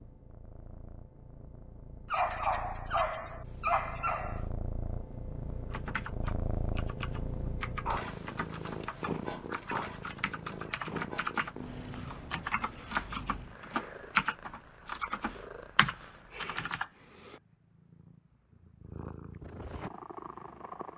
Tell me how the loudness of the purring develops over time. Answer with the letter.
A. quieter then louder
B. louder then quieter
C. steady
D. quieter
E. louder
B.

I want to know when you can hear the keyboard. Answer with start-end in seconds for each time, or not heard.
5.7-17.4.